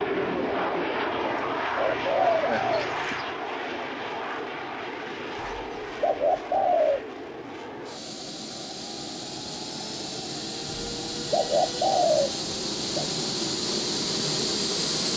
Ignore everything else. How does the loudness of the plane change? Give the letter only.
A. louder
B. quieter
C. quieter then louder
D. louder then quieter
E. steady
C.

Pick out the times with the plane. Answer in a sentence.
The plane can be heard from 0.0 to 15.1 s.